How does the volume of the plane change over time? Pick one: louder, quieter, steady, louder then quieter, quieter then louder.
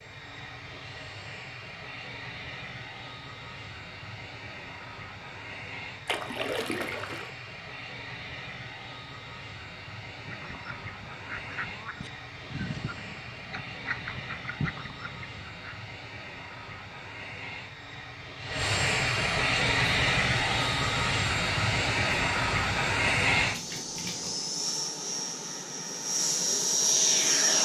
louder.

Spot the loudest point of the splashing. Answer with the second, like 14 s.
7 s.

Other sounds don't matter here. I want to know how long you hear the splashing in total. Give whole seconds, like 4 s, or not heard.
2 s.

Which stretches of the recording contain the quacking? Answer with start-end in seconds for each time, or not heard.
10.2-15.8.